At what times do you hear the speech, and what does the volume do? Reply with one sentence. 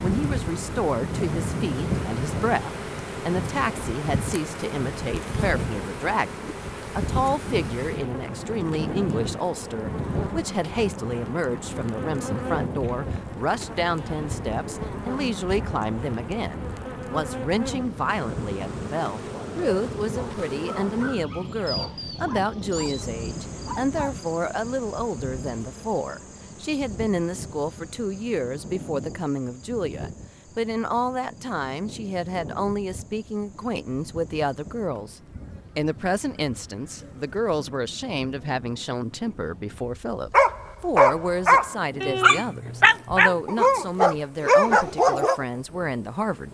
You can hear the speech from 0.0 to 46.4 s, at a steady volume.